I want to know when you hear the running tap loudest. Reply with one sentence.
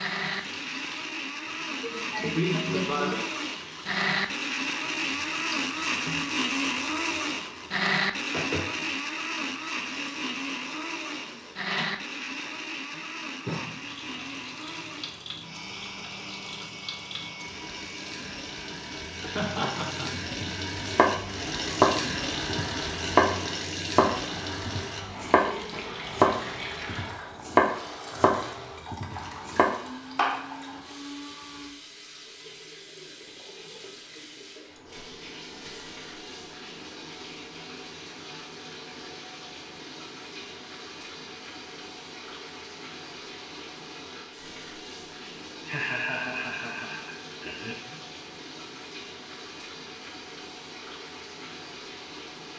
The volume of the running tap peaks at 22 seconds.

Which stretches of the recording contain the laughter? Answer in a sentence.
You can hear the laughter from 1.8 to 3.2 s, from 19.2 to 20.1 s and from 45.6 to 48.0 s.